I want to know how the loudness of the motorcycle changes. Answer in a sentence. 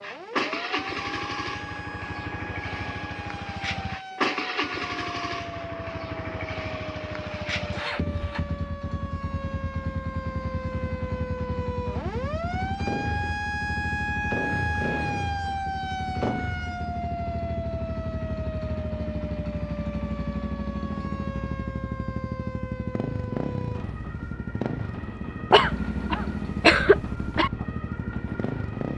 The volume of the motorcycle stays about the same.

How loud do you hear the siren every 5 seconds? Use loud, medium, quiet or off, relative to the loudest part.
medium, medium, loud, loud, medium, medium.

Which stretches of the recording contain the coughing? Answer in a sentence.
The coughing can be heard from 25.5 to 27.5 s.